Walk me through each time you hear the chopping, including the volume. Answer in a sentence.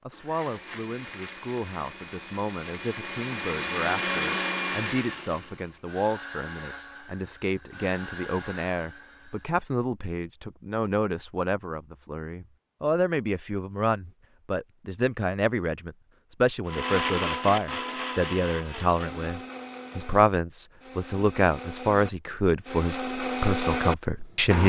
You can't hear the chopping here.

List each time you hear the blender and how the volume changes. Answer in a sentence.
The blender can be heard from 0.0 to 9.7 s, getting louder then quieter; and from 16.6 to 24.6 s, getting quieter then louder.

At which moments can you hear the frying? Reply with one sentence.
You can't hear the frying here.